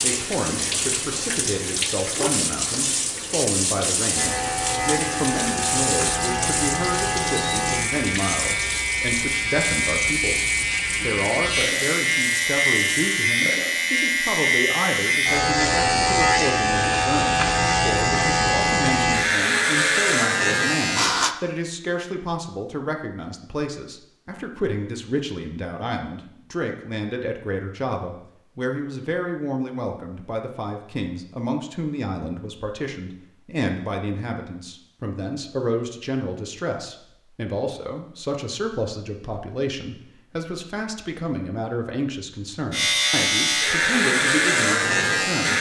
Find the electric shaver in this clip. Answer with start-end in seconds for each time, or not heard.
4.1-21.4, 42.7-45.5.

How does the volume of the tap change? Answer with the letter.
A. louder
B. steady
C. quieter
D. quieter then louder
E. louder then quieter
C.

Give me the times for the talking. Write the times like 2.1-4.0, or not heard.
0.0-45.5.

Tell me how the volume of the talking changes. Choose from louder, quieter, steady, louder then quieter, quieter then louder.
steady.